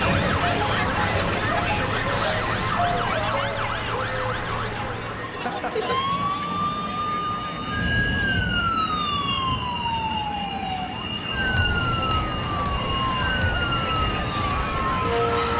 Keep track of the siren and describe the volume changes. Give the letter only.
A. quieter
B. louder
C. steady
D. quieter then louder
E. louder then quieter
C.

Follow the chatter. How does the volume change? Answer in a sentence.
The volume of the chatter goes down, then up.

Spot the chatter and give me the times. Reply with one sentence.
You can hear the chatter from 0.0 to 15.5 s.